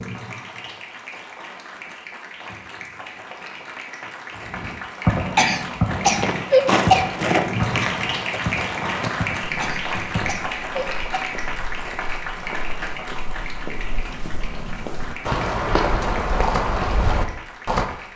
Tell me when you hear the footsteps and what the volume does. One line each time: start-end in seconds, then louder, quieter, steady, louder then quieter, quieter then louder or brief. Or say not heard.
5.9-17.9 quieter then louder.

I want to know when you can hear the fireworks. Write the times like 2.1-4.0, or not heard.
4.5-10.5.